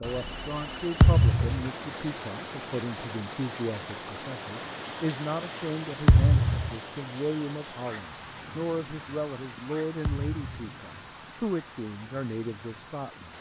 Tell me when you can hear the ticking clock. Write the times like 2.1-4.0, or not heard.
not heard.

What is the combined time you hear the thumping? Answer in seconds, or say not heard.
2 s.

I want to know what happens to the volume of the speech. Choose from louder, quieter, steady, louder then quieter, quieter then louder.
steady.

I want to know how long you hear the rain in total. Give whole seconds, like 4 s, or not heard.
13 s.